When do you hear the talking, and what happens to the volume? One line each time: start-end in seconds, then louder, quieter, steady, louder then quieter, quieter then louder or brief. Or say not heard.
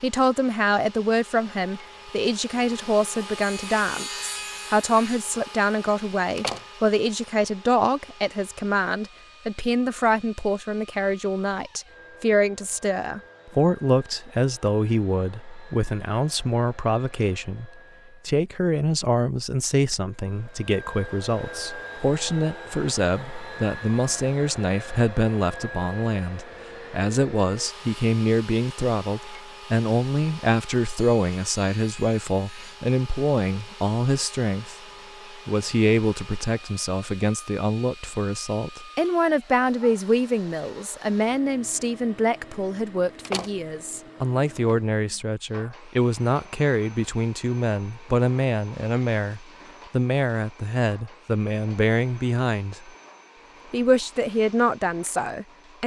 0.0-52.9 steady
53.7-55.8 brief.